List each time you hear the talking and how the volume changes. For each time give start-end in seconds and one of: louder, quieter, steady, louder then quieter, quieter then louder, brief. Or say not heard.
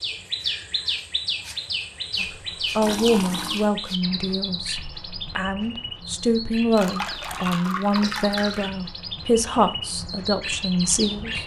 2.2-11.4 quieter then louder.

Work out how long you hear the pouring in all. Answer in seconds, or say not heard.
3 s.